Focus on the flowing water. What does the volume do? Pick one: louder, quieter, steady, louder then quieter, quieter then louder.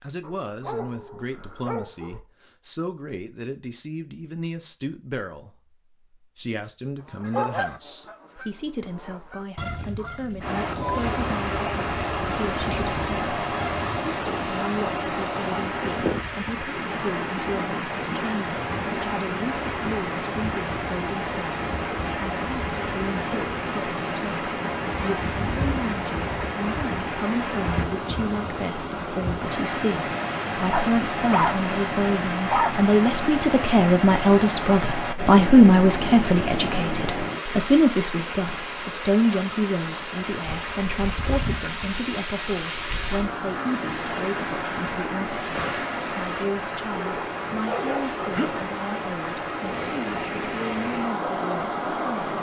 steady.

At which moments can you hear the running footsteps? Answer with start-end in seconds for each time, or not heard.
not heard.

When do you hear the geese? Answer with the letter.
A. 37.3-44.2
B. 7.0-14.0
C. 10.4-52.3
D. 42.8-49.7
B.